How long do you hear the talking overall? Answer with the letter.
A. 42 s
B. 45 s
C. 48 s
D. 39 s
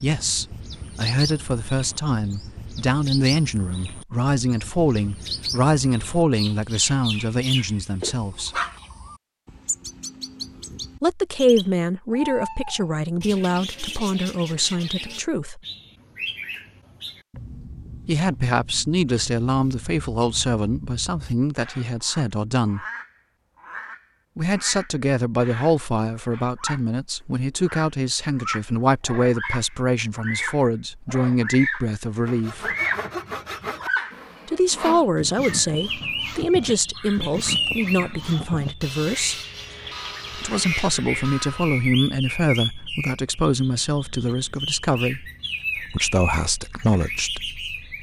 D.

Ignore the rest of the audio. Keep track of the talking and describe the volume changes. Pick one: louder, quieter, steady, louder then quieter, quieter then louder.
steady.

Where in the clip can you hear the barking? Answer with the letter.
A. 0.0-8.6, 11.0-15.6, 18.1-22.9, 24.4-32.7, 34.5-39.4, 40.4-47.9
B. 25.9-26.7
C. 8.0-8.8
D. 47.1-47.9
C.